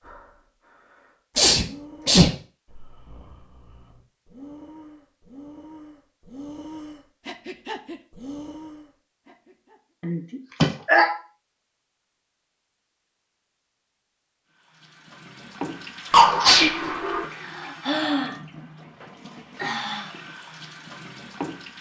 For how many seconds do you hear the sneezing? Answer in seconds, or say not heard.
3 s.